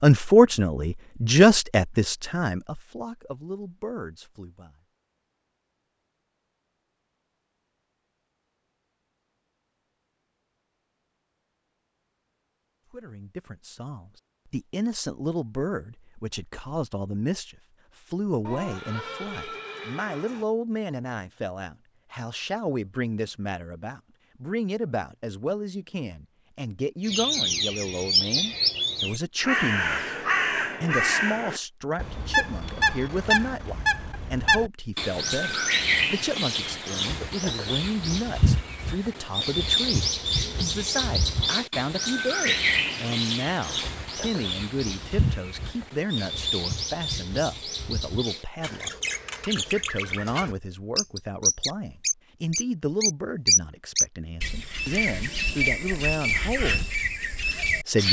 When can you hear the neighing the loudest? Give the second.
19 s.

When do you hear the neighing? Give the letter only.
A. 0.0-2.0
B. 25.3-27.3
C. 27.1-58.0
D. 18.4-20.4
D.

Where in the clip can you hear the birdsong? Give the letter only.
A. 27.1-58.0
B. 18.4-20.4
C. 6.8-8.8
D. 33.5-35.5
A.